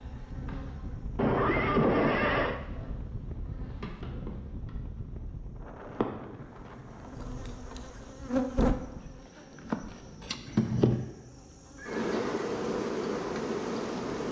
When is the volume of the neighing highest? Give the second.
2 s.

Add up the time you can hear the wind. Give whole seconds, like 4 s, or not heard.
9 s.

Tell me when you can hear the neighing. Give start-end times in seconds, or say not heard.
1.1-2.6, 11.8-12.4.